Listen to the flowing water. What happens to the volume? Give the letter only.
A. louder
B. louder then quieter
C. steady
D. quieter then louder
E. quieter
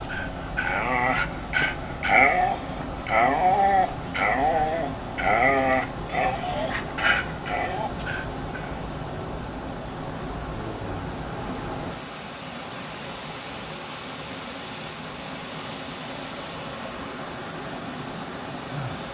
C.